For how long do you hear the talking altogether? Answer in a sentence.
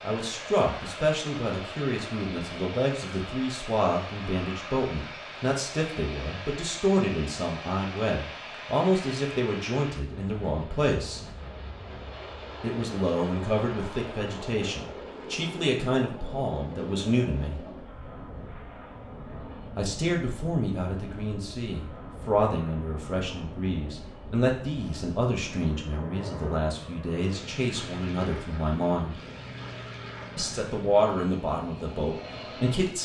The talking can be heard for 28 seconds in total.